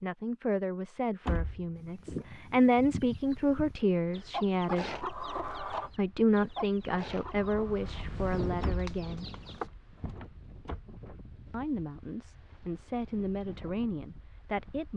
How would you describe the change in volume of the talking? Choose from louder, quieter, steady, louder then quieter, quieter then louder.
louder then quieter.